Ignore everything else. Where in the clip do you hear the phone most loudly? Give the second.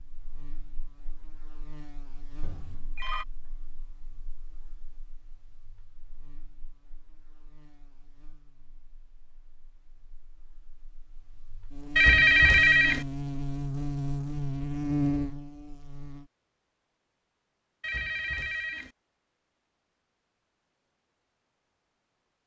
12 s.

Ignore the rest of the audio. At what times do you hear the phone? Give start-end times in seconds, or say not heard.
2.4-3.2, 11.9-13.1, 17.8-18.9.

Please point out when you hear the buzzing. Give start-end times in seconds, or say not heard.
0.0-16.2.